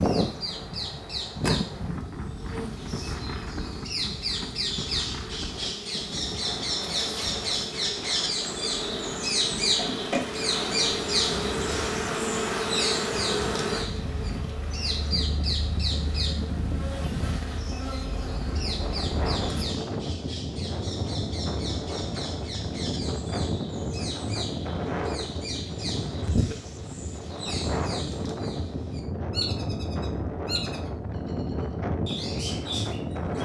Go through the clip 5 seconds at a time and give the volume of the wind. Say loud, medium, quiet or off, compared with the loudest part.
loud, medium, medium, loud, loud, loud, loud.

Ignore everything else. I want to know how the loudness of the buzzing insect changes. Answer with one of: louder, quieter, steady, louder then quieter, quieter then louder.
louder then quieter.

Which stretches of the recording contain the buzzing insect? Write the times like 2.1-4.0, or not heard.
0.0-19.6.